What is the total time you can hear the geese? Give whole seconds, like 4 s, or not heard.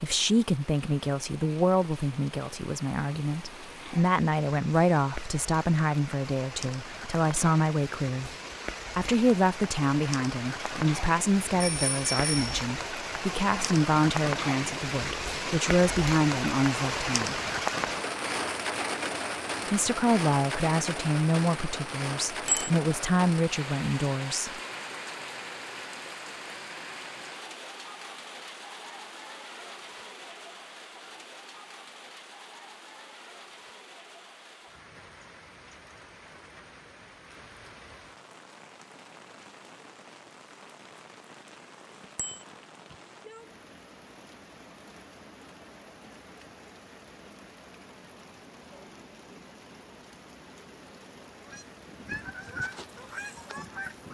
3 s.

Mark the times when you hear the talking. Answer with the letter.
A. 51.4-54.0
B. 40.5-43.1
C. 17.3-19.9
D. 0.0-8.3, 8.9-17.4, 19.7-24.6
D.